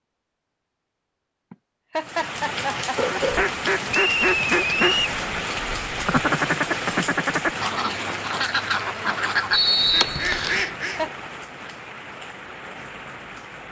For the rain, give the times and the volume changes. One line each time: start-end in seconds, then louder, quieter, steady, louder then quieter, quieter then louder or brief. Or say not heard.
1.9-13.6 quieter.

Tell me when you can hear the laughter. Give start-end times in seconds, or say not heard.
1.5-3.5, 10.6-11.1.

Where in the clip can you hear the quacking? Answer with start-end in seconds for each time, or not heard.
3.1-11.0.